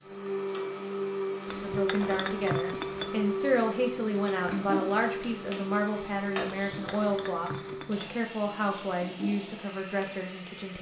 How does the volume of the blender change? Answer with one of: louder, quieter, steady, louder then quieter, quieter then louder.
quieter.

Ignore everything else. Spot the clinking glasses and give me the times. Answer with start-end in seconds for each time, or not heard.
1.4-3.1, 6.7-8.1.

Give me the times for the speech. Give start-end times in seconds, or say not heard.
1.6-10.7.